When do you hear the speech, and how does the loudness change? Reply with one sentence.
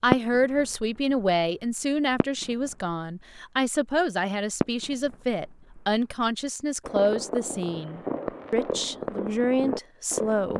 The speech can be heard from 0.0 to 10.5 s, at a steady volume.